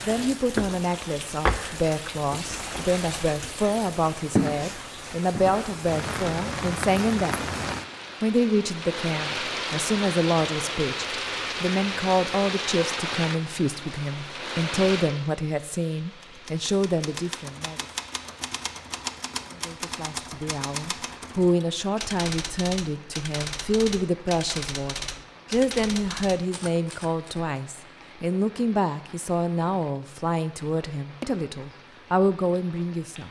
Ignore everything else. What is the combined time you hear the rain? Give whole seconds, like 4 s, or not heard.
33 s.